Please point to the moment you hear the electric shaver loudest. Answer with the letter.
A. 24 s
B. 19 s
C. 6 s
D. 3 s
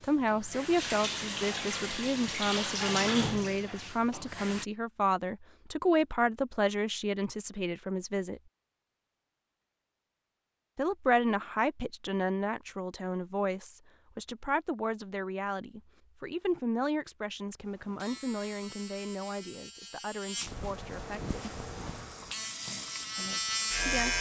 A.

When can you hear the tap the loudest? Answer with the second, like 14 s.
3 s.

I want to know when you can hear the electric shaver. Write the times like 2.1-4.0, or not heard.
17.6-24.1.